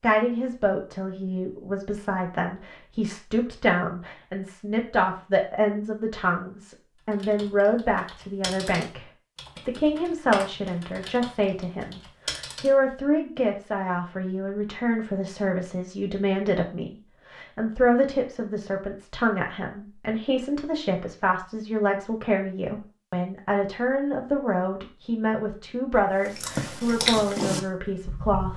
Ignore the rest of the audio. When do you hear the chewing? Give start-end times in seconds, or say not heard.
26.2-28.5.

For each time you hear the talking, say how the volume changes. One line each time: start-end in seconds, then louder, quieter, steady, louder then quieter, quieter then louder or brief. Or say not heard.
0.0-28.5 steady.